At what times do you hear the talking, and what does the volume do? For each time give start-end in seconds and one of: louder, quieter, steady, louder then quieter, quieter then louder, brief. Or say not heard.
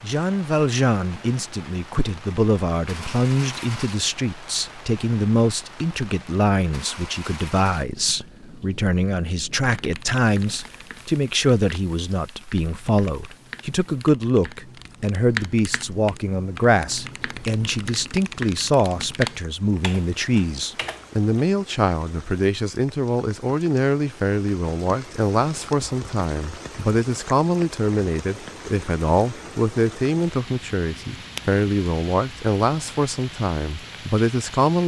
0.0-34.8 steady.